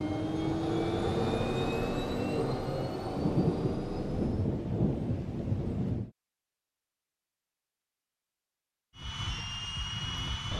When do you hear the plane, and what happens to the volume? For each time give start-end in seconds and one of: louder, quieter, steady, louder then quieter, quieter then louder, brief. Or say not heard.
0.0-4.5 quieter
8.9-10.5 brief.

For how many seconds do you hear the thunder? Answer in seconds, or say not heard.
3 s.